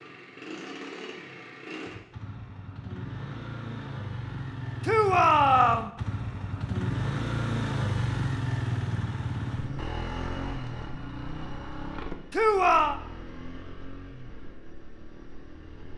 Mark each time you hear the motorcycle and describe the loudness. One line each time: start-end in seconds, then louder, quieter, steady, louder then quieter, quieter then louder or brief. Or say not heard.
0.0-15.9 louder then quieter.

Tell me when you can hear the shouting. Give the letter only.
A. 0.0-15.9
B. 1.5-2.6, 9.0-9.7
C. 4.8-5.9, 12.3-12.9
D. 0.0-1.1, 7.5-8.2
C.